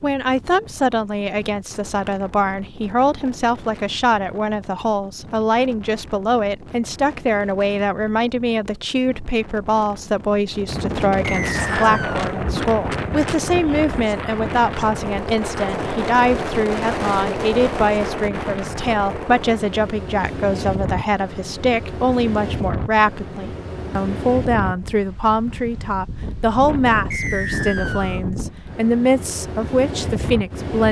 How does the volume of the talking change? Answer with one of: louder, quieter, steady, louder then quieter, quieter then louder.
steady.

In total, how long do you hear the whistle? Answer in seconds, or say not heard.
2 s.